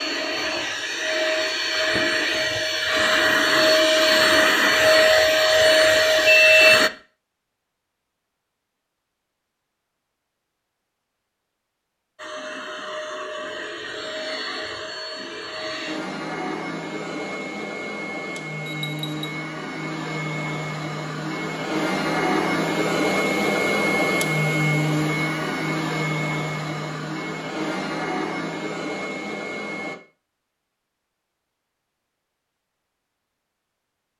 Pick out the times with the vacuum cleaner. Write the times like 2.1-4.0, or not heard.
0.0-6.9, 12.2-29.9.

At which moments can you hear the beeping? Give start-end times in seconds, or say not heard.
6.2-6.8, 18.6-19.3.